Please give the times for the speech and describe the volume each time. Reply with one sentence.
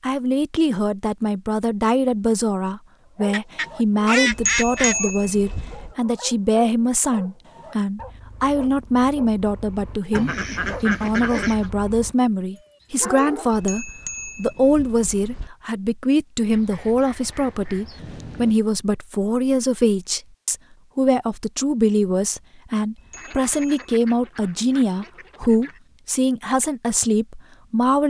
The speech can be heard from 0.0 to 28.0 s, at a steady volume.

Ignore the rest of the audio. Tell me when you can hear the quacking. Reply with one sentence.
The quacking can be heard from 3.3 to 5.0 s, from 10.1 to 11.7 s, from 16.5 to 18.6 s and from 23.1 to 25.8 s.